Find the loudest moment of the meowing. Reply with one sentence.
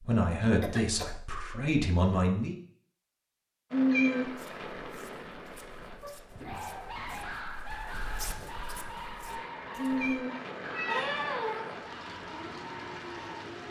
The volume of the meowing peaks at 4 seconds.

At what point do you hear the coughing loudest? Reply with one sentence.
The loudest moment of the coughing is at 11 seconds.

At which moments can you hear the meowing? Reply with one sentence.
You can hear the meowing from 3.7 to 4.3 s and from 9.8 to 11.1 s.